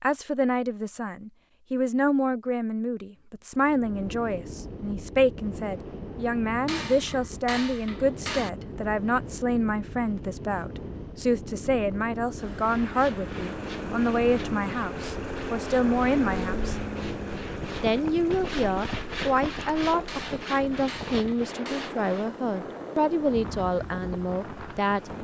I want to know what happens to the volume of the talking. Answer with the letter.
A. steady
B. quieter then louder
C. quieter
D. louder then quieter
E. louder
A.